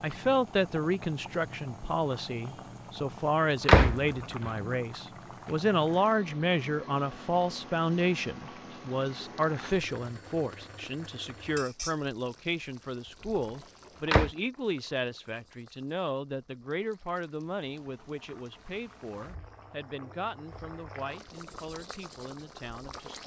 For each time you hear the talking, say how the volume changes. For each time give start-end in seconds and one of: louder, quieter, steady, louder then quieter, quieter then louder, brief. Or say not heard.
0.0-23.2 quieter.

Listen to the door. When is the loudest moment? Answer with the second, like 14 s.
4 s.